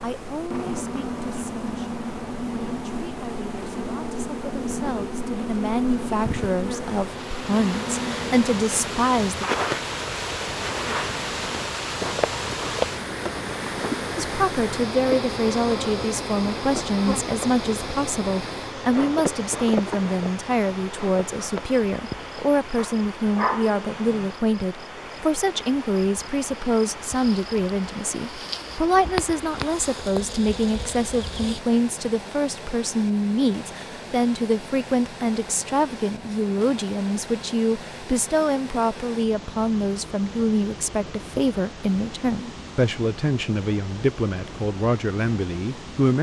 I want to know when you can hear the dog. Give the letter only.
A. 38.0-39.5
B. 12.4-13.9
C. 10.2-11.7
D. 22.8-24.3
D.